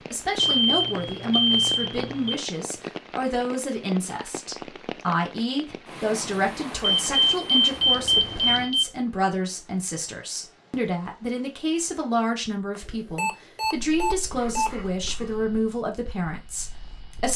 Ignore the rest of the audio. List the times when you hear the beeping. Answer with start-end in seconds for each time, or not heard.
0.3-2.4, 7.0-8.8, 12.8-14.7.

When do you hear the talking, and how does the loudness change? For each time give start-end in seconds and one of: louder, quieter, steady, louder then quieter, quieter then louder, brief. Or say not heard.
0.0-17.3 steady.